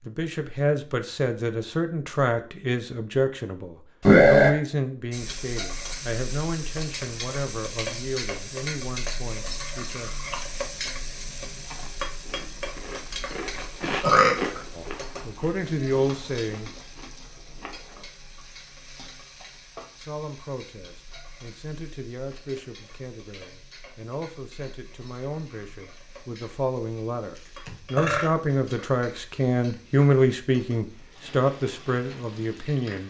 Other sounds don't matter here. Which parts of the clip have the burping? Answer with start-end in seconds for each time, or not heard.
4.0-4.5, 14.0-14.6, 27.4-28.2.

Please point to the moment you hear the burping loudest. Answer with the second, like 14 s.
4 s.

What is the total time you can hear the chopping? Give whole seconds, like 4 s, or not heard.
not heard.